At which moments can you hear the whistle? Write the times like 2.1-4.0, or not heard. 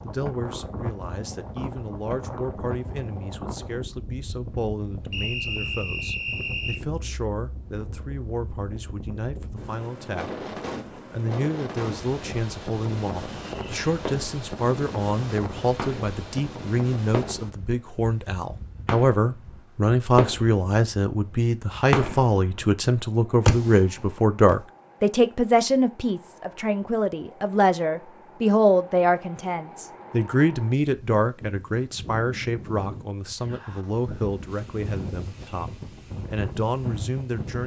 5.1-6.8.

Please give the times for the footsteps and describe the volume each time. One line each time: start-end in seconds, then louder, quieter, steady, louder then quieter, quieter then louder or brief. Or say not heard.
not heard.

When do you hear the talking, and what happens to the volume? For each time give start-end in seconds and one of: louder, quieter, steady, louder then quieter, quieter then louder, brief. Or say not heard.
0.0-10.3 steady
11.1-37.6 louder then quieter.